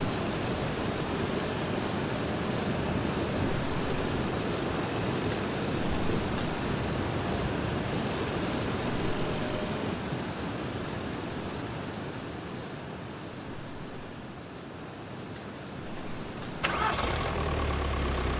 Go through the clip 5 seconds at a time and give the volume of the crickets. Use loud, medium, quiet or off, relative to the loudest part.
loud, loud, medium, medium.